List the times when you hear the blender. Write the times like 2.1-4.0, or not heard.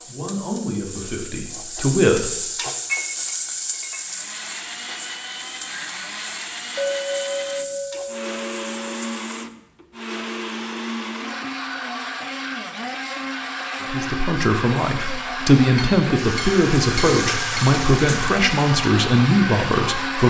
4.0-20.2.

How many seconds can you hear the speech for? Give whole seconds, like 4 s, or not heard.
9 s.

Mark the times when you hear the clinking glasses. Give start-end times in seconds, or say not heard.
2.9-4.0, 6.8-9.1, 15.8-17.8.